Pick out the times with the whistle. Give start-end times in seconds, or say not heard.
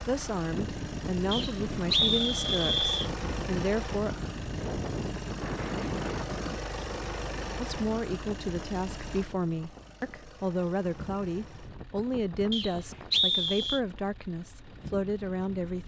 1.3-3.1, 12.5-13.8.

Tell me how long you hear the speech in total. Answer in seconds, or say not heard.
12 s.